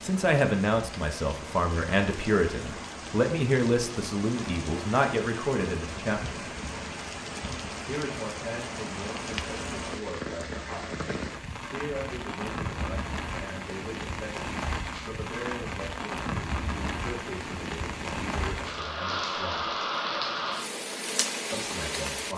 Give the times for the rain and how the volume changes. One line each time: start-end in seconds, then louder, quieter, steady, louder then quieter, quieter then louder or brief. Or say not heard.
0.0-22.3 louder.